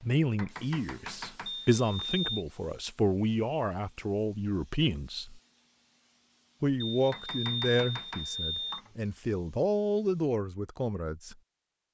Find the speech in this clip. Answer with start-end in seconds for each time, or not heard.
0.0-5.4, 6.6-11.3.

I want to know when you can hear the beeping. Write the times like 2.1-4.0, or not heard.
1.4-2.5, 6.8-8.8.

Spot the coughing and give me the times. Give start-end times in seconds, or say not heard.
not heard.